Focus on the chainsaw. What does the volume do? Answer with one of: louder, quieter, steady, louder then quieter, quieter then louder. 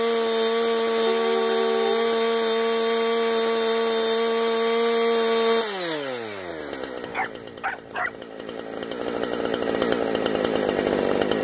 quieter then louder.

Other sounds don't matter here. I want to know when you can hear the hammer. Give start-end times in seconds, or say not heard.
not heard.